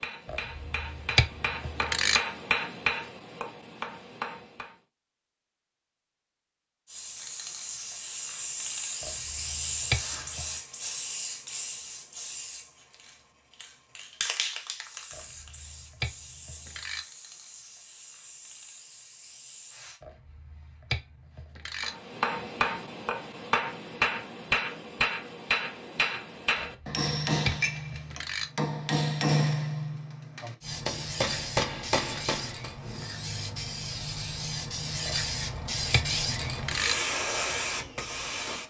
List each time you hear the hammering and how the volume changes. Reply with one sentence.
The hammering can be heard from 0.0 to 4.8 s, getting louder then quieter; and from 21.8 to 32.7 s, at a steady volume.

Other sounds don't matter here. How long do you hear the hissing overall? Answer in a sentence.
The hissing can be heard for 21 seconds in total.